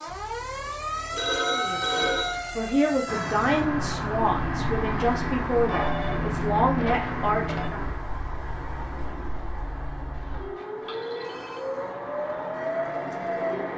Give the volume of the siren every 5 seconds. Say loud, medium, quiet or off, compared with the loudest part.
loud, medium, loud.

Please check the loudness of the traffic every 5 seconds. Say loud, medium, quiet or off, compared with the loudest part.
loud, loud, medium.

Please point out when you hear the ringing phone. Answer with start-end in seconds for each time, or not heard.
1.1-2.4, 5.7-7.7, 10.2-11.8.